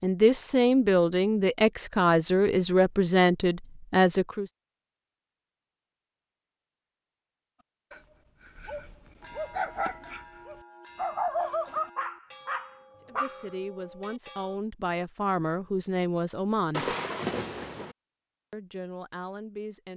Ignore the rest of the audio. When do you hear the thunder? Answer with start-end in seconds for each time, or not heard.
16.7-17.9.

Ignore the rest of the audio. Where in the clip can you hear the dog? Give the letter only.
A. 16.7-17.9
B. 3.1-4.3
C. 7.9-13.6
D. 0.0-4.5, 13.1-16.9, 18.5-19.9
C.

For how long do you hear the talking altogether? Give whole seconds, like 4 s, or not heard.
10 s.